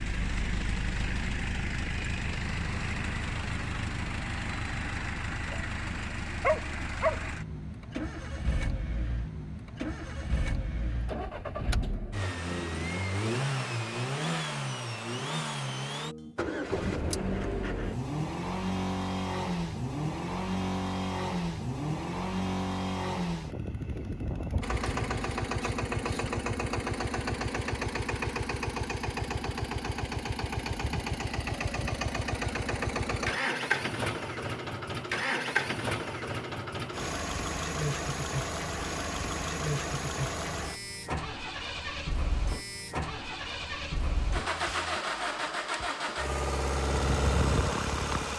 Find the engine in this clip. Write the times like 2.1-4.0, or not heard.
0.0-48.3.